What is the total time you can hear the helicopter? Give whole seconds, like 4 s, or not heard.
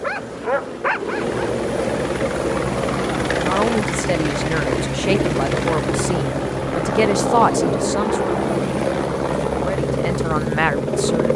11 s.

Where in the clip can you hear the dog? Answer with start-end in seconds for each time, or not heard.
0.0-1.4.